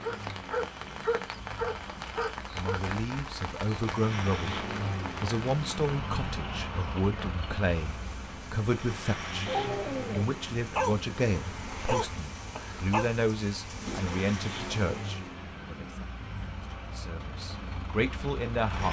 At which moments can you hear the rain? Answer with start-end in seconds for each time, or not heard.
0.0-15.2.